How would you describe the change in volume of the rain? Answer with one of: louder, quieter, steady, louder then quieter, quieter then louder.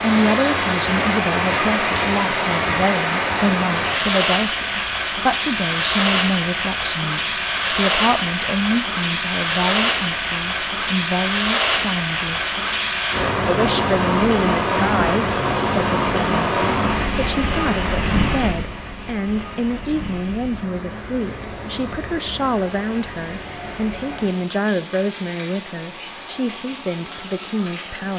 quieter.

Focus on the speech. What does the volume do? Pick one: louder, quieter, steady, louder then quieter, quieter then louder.
steady.